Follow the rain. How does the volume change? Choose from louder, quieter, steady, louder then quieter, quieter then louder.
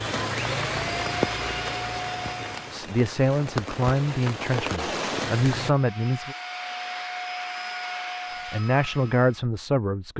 quieter then louder.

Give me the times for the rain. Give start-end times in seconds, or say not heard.
0.0-5.7.